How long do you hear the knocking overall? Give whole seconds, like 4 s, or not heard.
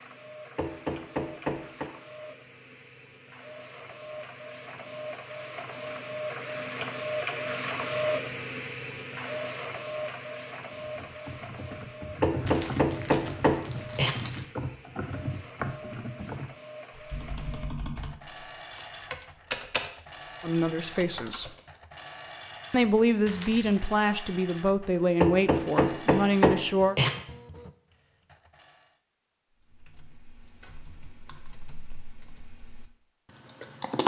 5 s.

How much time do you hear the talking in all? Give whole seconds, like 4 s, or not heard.
5 s.